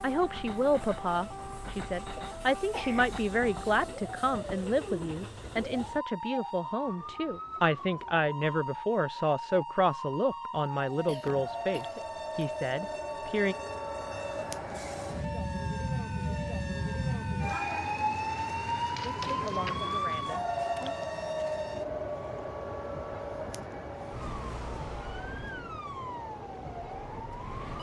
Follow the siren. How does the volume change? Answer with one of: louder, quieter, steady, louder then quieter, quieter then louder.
louder then quieter.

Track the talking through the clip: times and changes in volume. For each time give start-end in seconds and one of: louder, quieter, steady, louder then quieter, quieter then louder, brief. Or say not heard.
0.0-13.6 steady
19.1-20.9 brief.